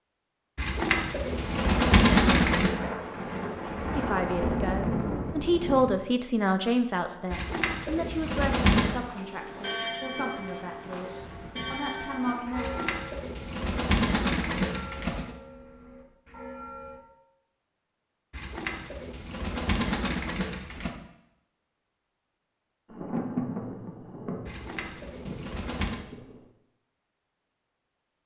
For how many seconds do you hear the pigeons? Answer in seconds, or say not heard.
11 s.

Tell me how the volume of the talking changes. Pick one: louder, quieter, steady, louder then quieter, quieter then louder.
quieter.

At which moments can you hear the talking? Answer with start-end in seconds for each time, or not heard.
4.0-12.7.